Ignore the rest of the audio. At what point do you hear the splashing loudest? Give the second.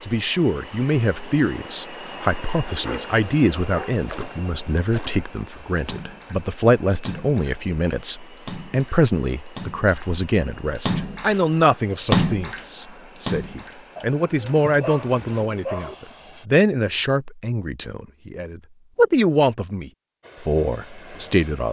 12 s.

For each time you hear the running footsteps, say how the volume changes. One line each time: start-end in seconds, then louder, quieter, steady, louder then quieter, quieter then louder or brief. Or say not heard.
not heard.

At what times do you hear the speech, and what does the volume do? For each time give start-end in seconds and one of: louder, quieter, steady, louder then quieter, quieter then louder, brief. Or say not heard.
0.1-21.6 steady.